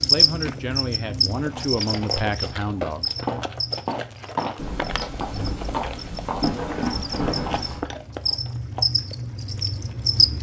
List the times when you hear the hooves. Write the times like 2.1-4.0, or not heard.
1.3-8.8.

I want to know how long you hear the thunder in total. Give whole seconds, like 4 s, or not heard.
3 s.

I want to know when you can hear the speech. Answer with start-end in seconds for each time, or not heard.
0.0-3.1.